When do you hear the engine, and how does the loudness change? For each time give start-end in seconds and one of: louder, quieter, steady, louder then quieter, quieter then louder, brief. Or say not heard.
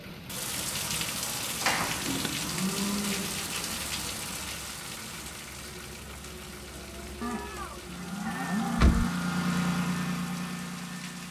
0.0-11.2 louder.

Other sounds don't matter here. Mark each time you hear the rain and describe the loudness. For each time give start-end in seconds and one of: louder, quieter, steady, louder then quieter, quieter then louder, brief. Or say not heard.
0.0-11.2 quieter.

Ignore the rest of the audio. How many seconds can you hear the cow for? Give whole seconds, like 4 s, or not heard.
3 s.